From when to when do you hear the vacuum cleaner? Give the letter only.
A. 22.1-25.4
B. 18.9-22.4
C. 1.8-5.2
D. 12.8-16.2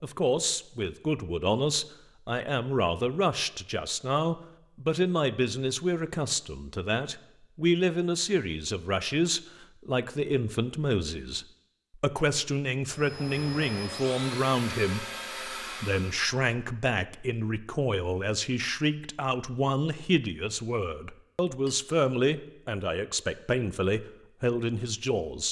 D.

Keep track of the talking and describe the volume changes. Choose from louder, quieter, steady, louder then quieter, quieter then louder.
steady.